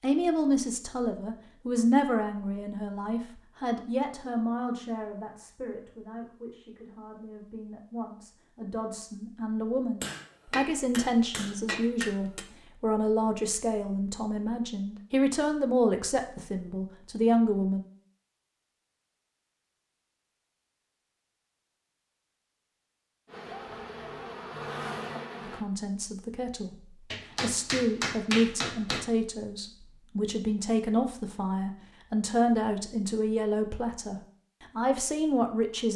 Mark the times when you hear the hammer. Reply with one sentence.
You can hear the hammer from 10.0 to 12.4 s and from 27.1 to 29.1 s.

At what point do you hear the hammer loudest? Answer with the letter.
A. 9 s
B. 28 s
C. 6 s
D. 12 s
B.